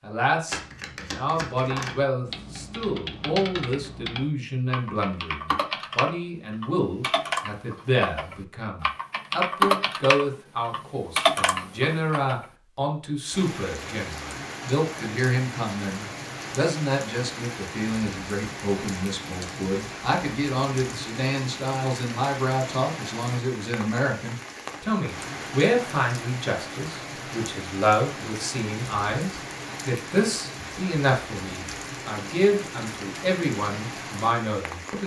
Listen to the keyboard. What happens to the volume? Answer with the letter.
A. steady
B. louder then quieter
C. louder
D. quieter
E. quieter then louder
C.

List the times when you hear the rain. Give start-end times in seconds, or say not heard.
13.3-35.0.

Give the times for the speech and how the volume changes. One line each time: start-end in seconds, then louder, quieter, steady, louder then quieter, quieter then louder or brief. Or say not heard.
0.0-35.0 steady.